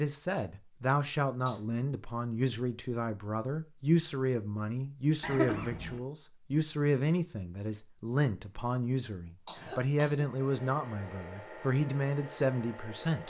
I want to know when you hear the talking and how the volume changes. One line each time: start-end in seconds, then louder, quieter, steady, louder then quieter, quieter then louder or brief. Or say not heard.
0.0-13.2 steady.